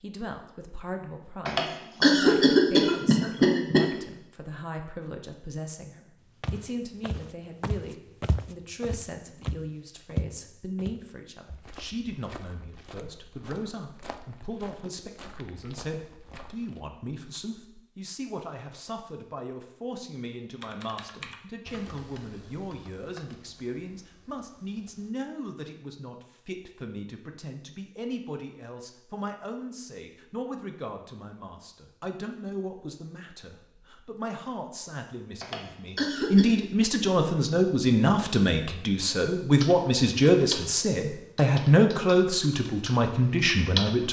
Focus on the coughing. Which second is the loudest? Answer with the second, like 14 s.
2 s.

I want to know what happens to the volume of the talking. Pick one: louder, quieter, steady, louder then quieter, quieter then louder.
louder.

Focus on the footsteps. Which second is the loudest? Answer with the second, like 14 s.
10 s.